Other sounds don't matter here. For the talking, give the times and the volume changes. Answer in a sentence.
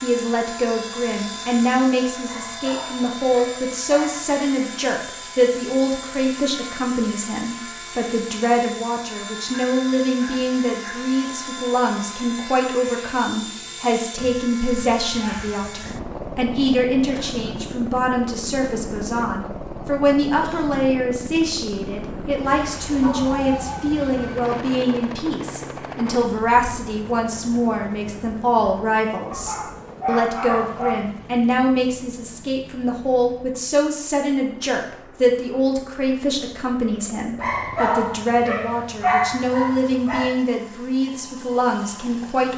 The talking can be heard from 0.0 to 42.5 s, at a steady volume.